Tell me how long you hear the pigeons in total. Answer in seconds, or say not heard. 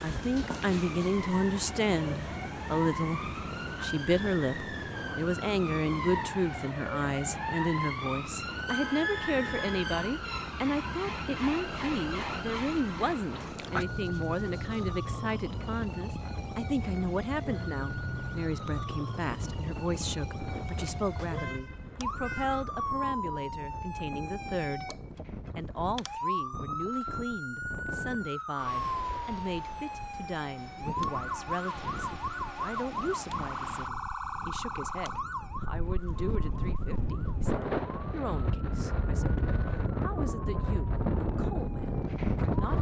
not heard.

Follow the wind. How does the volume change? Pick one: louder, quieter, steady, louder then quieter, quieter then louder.
louder.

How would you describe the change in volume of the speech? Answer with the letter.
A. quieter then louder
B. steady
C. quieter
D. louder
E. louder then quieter
C.